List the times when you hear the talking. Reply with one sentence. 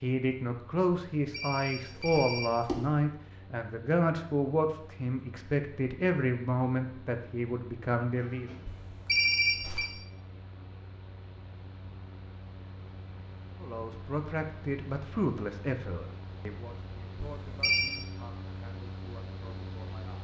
You can hear the talking from 0.0 to 8.5 s and from 13.6 to 20.1 s.